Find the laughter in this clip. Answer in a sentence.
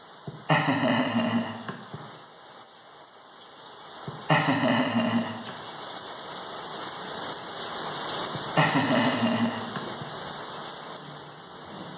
The laughter can be heard from 0.2 to 2.0 s, from 4.0 to 5.5 s and from 8.3 to 10.1 s.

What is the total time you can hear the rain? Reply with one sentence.
You can hear the rain for 12 seconds altogether.